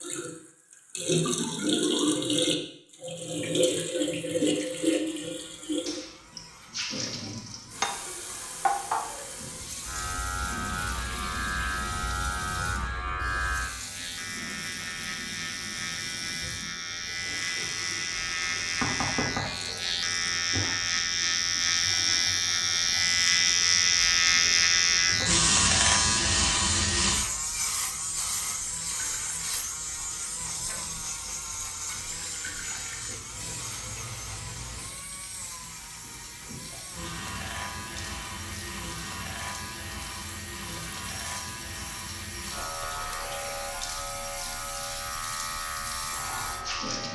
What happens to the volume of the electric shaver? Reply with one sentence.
The loudness of the electric shaver goes up, then down.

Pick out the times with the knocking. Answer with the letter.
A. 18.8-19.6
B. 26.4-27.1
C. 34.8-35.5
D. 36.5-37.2
A.